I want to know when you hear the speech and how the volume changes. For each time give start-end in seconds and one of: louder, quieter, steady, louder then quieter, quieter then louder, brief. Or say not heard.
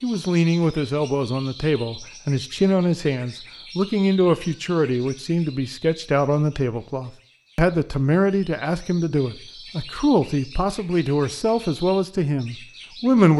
0.0-13.3 steady.